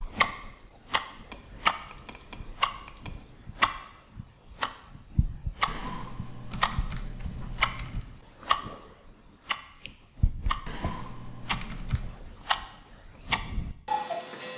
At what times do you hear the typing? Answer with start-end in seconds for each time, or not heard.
1.3-3.2, 5.7-8.1, 10.7-12.2.